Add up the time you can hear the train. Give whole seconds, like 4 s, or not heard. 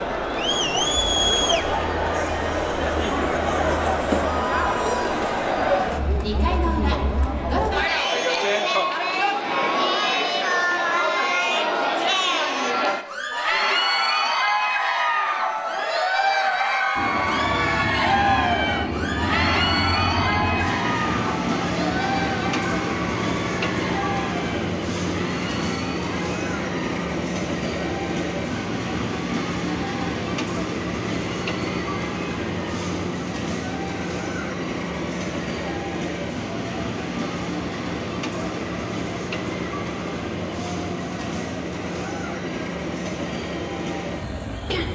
28 s.